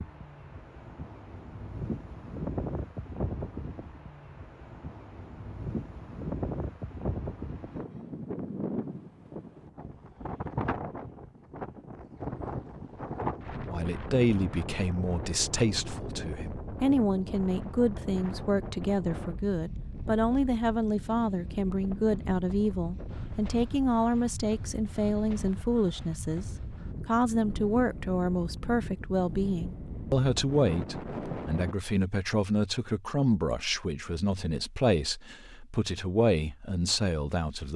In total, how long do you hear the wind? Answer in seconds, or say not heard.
32 s.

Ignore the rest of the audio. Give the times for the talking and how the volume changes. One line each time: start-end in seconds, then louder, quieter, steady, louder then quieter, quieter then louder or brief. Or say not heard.
13.7-26.4 steady
27.1-37.7 steady.